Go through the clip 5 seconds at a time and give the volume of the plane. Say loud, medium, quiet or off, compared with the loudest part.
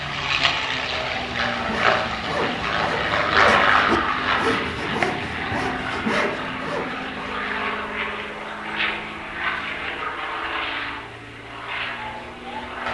loud, medium, medium.